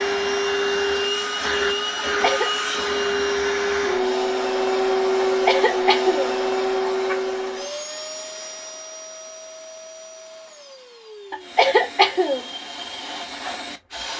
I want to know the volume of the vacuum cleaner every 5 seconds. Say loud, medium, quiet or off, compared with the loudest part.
loud, loud, quiet.